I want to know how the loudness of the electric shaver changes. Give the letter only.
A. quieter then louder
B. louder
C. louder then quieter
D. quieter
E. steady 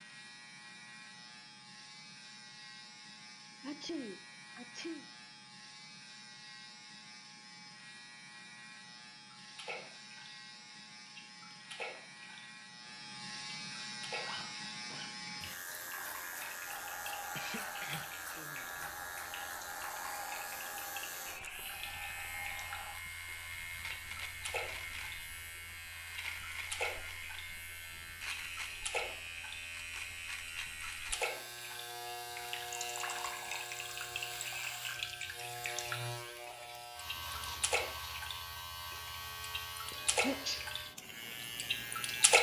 B.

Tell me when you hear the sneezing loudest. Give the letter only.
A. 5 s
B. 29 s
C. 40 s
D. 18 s
C.